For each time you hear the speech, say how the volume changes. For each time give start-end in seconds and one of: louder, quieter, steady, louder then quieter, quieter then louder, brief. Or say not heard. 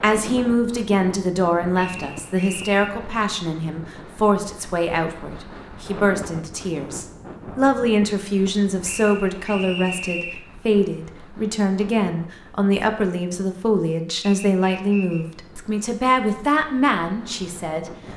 0.0-18.0 steady.